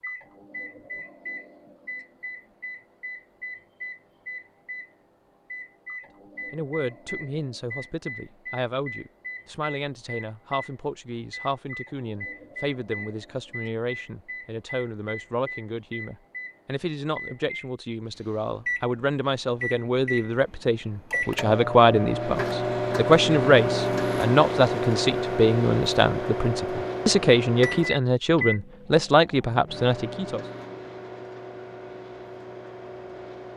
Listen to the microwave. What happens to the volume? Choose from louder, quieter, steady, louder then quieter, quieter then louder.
louder then quieter.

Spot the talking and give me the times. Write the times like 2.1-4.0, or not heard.
6.5-30.4.